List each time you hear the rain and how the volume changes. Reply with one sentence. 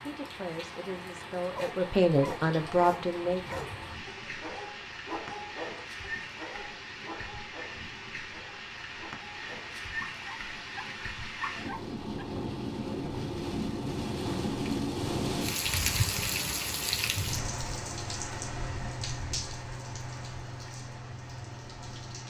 The rain can be heard from 0.0 to 22.2 s, getting louder then quieter.